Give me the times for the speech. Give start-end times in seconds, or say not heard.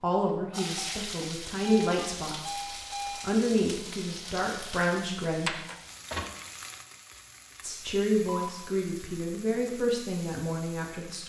0.0-2.5, 3.2-5.5, 7.6-11.2.